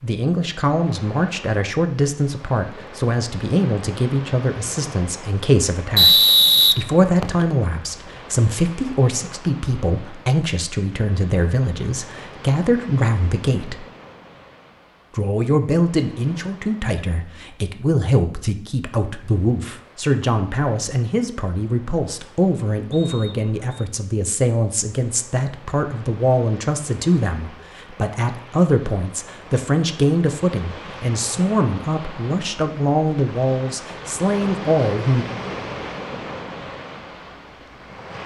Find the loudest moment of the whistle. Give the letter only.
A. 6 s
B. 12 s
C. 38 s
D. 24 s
A.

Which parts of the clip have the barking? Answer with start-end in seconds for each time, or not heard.
not heard.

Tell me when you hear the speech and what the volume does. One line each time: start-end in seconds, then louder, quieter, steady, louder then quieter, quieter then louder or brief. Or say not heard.
0.0-13.8 steady
15.2-35.2 steady.